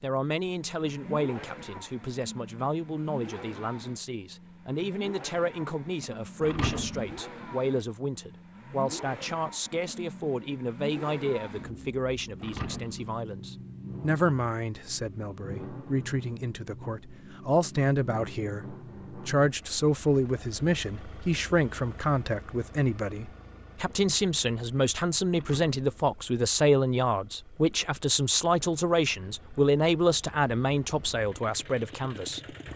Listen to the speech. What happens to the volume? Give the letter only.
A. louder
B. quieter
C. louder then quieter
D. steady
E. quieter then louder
A.